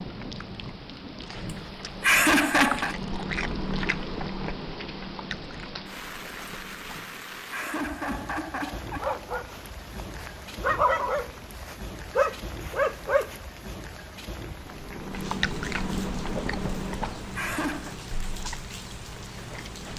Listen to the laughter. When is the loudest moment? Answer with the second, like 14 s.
2 s.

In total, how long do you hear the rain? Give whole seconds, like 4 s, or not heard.
20 s.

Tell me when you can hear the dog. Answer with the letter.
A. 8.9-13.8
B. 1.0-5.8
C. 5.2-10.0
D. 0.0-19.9
A.